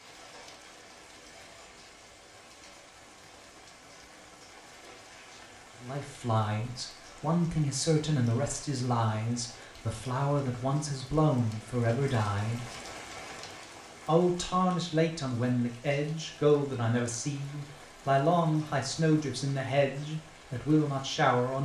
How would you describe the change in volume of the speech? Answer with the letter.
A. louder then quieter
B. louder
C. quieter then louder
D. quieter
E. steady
E.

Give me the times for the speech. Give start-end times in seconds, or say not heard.
5.8-12.8, 14.1-21.6.